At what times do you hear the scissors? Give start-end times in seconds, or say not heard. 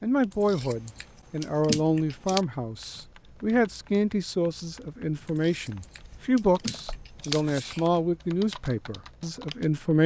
0.3-2.5, 5.2-7.8.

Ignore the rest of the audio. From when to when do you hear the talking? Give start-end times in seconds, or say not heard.
0.0-10.0.